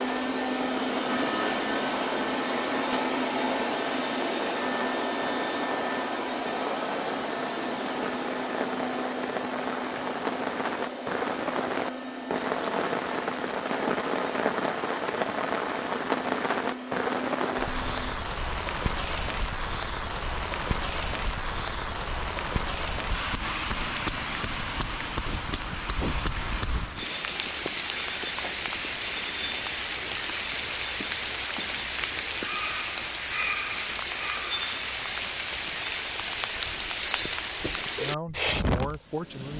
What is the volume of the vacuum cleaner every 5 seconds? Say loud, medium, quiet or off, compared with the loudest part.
loud, loud, medium, medium, off, off, off, off.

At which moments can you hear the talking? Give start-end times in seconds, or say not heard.
38.0-39.5.